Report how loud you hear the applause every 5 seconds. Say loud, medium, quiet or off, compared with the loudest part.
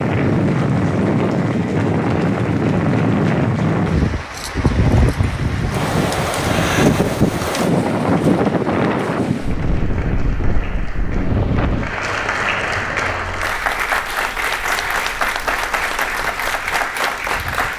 quiet, quiet, loud, loud.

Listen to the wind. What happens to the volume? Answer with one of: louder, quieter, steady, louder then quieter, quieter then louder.
quieter.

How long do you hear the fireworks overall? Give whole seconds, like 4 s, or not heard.
not heard.